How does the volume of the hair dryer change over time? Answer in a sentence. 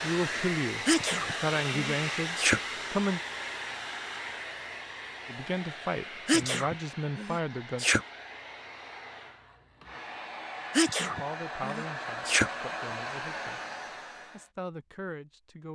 The volume of the hair dryer goes down, then up.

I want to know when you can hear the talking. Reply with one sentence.
The talking can be heard from 0.0 to 3.2 s, from 5.2 to 7.8 s, from 11.0 to 13.6 s and from 14.3 to 15.7 s.